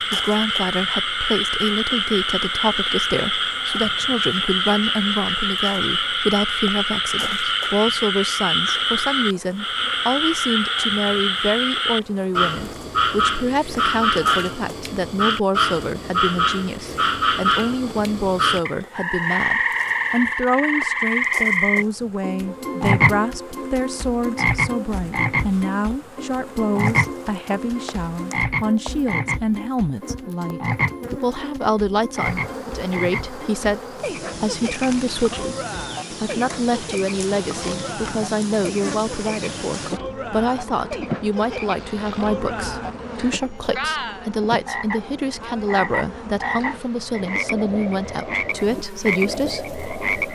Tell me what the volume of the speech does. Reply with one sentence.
The loudness of the speech stays about the same.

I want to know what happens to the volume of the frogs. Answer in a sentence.
The volume of the frogs goes down.